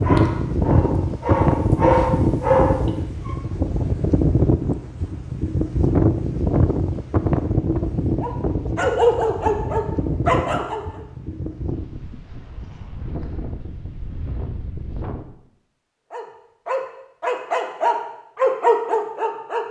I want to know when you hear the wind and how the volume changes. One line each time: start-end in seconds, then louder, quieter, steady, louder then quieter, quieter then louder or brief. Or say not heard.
0.0-15.3 quieter.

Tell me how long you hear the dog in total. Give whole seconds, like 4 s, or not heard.
10 s.